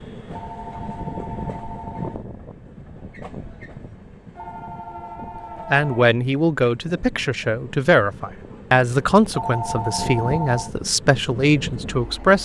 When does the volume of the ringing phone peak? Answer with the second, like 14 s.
10 s.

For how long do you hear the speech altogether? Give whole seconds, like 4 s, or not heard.
7 s.